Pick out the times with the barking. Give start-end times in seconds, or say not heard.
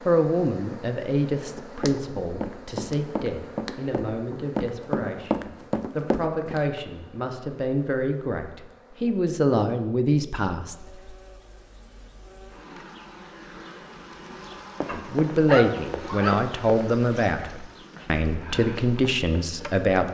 14.8-17.5.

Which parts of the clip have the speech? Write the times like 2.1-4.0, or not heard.
0.1-10.8, 14.9-20.0.